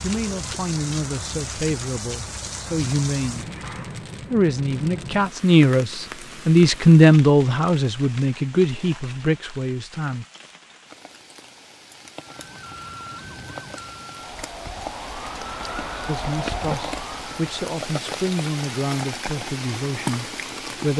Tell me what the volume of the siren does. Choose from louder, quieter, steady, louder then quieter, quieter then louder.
louder.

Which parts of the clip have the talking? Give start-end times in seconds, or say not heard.
0.0-3.5, 4.3-10.2, 16.1-20.9.